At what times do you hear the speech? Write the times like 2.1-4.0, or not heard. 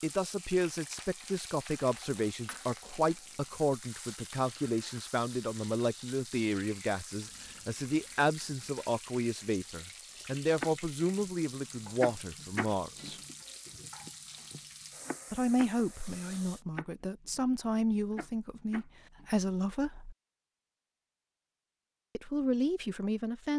0.0-13.2, 15.3-20.1, 22.1-23.5.